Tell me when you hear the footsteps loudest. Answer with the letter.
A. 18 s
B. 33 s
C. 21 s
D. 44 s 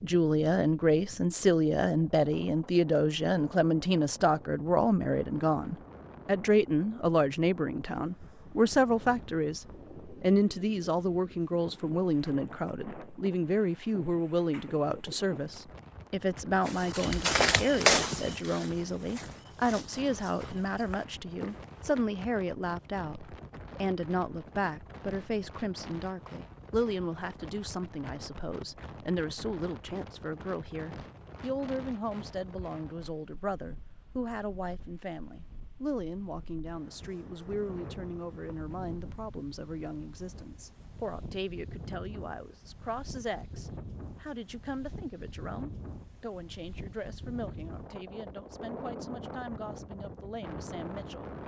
A.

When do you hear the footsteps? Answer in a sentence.
The footsteps can be heard from 16.6 to 22.1 s.